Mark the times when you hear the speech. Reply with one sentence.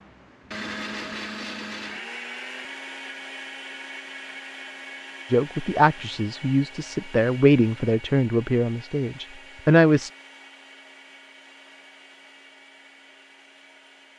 You can hear the speech from 5.3 to 10.1 s.